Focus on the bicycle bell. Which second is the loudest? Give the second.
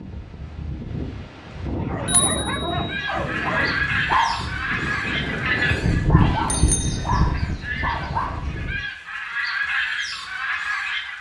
6 s.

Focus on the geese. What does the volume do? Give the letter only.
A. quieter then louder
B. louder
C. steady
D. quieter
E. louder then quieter
A.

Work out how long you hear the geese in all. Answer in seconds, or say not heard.
8 s.